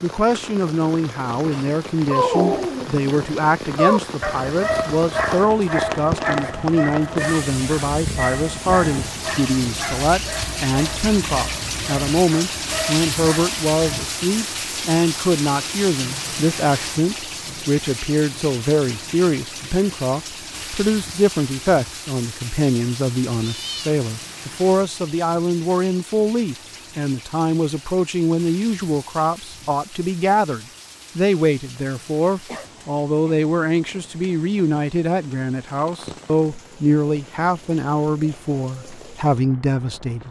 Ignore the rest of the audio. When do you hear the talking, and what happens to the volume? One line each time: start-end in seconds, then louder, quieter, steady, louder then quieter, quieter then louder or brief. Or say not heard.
0.0-40.2 steady.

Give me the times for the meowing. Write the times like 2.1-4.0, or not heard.
23.4-23.9.